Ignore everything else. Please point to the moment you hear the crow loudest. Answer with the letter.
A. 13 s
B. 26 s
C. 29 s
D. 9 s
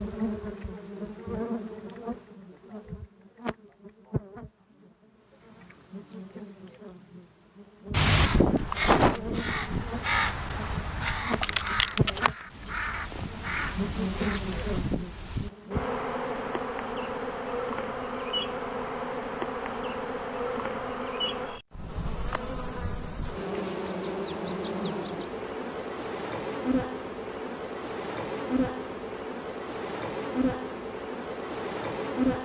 D.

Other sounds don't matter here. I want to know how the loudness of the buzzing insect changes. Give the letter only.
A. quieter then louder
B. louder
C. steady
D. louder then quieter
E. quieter
B.